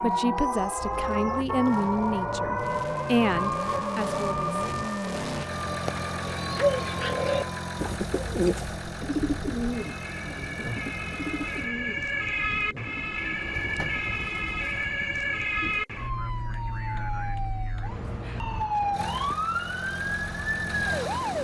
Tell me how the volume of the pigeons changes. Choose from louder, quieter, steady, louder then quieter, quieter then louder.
quieter.